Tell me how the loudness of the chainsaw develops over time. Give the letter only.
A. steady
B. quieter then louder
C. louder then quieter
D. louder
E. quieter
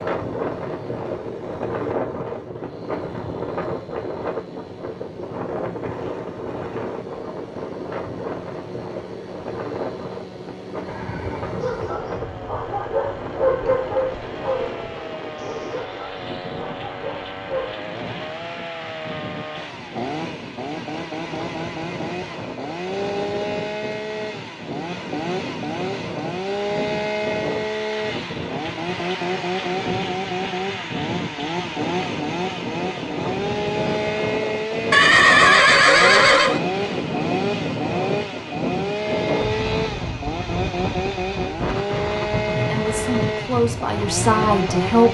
D.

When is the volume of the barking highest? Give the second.
14 s.